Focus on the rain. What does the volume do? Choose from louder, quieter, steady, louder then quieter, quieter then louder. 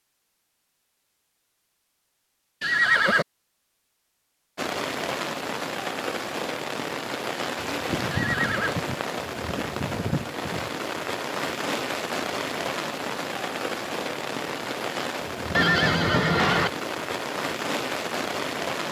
steady.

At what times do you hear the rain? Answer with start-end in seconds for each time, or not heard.
4.5-18.8.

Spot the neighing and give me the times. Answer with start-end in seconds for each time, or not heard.
2.6-3.2, 8.1-8.8, 15.5-16.7.